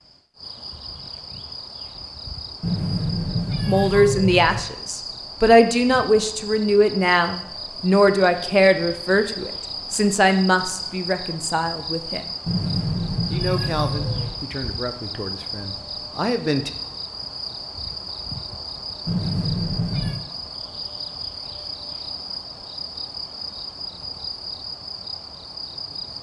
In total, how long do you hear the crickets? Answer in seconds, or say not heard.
26 s.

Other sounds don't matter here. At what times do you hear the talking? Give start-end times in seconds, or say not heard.
3.6-12.3, 13.2-16.7.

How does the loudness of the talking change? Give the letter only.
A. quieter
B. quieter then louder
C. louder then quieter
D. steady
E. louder
A.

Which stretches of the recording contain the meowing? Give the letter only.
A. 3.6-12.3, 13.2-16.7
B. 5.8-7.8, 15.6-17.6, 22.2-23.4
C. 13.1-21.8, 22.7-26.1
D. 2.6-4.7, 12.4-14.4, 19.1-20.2
D.